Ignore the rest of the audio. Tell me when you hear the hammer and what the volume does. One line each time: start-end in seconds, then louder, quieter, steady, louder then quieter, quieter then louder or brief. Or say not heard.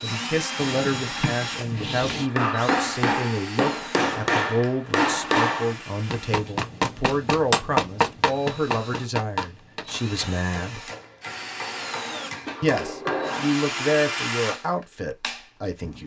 2.2-13.6 quieter.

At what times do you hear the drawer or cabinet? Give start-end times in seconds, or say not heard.
0.6-2.3, 12.4-13.4.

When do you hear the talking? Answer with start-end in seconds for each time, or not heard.
0.0-10.9, 12.6-16.0.